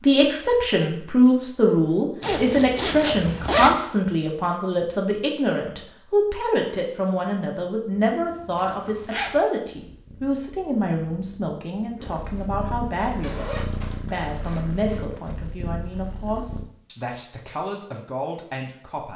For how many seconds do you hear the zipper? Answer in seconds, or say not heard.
4 s.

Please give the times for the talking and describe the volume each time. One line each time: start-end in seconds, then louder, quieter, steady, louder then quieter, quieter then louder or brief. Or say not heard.
0.0-19.1 quieter.